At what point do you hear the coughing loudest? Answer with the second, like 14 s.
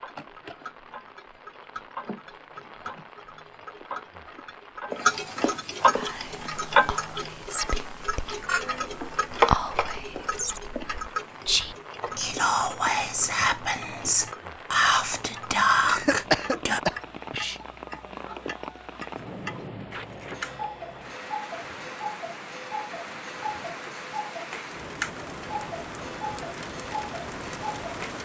16 s.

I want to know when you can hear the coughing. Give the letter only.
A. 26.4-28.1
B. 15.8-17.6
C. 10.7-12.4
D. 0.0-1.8
B.